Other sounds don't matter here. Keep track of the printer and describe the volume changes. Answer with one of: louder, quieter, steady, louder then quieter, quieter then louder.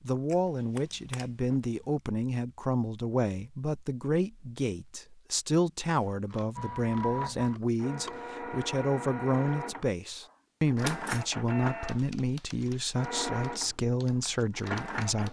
steady.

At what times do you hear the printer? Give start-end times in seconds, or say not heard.
6.5-15.2.